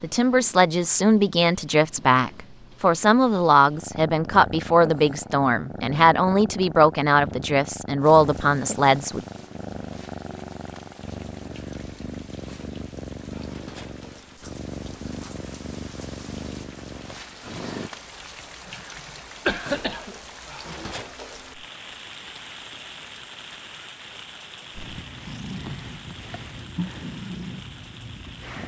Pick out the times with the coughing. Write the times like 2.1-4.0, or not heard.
18.6-20.1.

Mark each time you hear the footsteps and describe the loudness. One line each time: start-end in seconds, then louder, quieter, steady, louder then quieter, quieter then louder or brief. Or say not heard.
not heard.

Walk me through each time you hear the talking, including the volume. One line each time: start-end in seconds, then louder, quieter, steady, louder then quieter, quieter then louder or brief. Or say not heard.
0.0-9.2 steady.